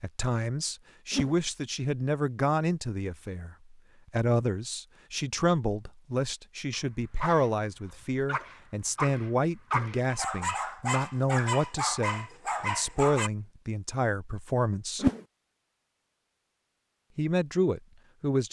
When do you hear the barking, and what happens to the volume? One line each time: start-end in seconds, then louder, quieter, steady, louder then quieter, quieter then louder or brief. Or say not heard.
6.7-13.3 louder.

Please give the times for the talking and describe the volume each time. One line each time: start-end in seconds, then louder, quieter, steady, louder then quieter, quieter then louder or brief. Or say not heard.
0.0-15.1 steady
17.1-18.4 brief.